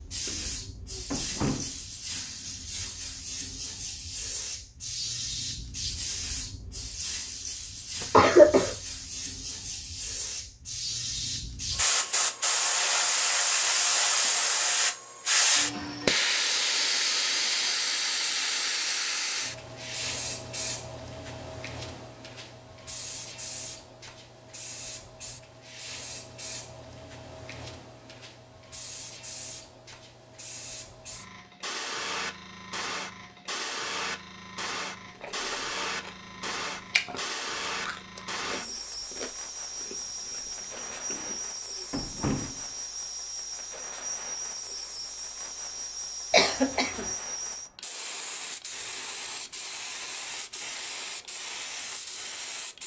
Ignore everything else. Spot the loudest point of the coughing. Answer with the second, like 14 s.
8 s.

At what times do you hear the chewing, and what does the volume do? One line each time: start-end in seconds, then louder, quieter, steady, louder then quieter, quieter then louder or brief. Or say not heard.
35.0-41.5 louder then quieter.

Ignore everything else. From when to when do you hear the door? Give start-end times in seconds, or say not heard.
0.2-1.8, 41.1-42.6.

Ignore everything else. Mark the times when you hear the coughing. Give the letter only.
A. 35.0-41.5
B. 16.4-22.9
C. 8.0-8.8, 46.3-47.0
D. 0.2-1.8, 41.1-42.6
C.